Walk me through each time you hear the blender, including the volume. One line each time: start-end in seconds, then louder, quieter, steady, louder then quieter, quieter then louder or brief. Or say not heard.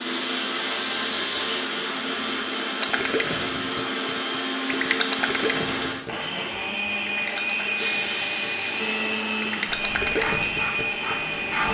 0.0-11.6 steady.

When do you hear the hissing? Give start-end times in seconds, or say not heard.
0.0-2.2, 7.7-11.6.